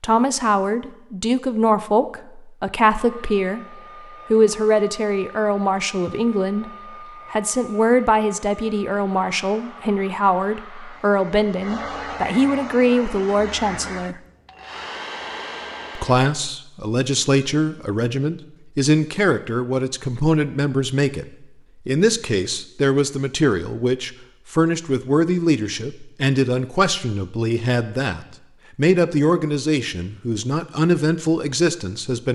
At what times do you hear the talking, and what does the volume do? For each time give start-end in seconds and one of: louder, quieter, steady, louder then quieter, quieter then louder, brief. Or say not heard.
0.0-14.2 steady
15.9-32.3 steady.